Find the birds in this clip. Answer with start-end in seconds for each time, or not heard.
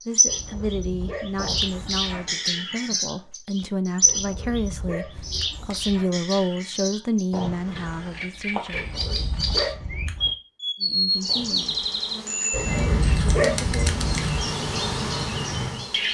0.0-16.0.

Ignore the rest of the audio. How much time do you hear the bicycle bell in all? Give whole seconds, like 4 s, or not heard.
4 s.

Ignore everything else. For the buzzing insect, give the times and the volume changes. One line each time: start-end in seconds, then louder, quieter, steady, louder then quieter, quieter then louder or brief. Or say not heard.
11.1-16.0 louder.